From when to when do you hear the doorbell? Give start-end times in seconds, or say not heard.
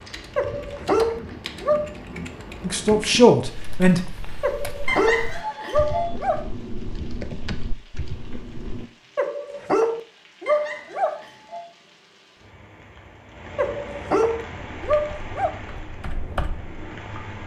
4.8-6.1, 10.4-11.7.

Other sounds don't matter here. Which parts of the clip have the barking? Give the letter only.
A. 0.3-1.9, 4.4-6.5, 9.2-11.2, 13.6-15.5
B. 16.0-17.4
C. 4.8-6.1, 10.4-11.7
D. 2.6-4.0
A.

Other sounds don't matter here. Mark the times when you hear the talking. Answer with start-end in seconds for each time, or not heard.
2.6-4.0.